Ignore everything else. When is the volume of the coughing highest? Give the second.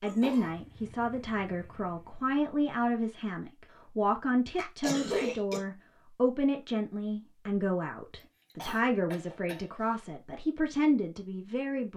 5 s.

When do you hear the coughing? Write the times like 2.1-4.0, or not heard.
0.1-0.6, 4.5-5.6, 8.5-9.7.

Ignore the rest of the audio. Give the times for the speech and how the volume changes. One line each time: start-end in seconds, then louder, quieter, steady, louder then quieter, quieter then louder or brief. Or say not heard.
0.0-11.9 steady.